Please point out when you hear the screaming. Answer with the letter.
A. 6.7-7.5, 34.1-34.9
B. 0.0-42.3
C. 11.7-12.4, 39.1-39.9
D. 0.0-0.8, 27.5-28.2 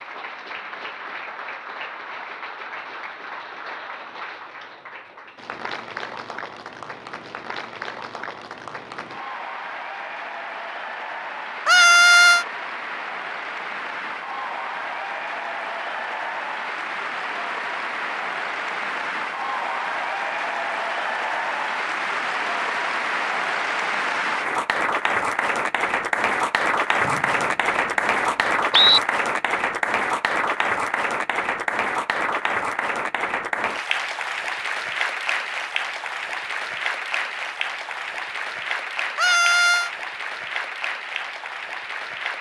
C.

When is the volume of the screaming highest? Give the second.
12 s.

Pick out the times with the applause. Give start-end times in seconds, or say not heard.
0.0-42.3.